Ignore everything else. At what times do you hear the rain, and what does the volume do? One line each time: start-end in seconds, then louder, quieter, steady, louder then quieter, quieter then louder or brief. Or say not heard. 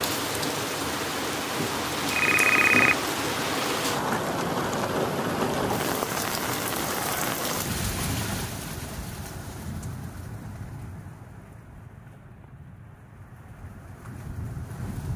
0.0-15.1 quieter.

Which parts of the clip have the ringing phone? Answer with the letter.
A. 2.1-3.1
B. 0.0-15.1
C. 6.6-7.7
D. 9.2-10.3
A.